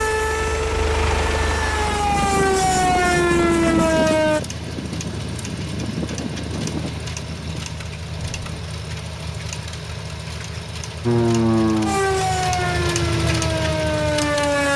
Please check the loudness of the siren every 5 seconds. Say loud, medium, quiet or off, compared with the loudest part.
loud, off, loud.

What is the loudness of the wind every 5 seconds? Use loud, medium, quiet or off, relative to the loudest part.
loud, medium, off.